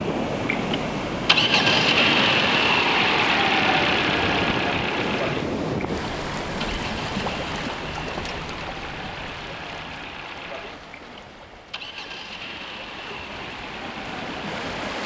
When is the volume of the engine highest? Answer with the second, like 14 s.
2 s.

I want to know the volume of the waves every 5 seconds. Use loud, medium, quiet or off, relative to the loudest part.
loud, loud, medium.